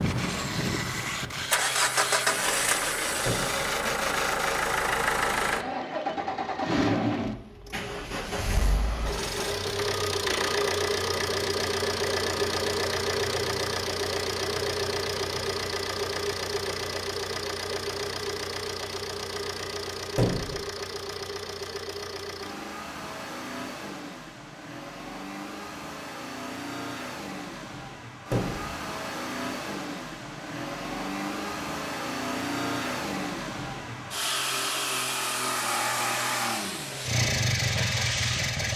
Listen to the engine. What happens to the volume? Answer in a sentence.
The volume of the engine goes down, then up.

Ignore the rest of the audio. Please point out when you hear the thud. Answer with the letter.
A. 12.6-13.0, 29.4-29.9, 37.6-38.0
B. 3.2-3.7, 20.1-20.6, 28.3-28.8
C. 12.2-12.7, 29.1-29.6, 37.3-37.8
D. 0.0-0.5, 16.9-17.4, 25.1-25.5
B.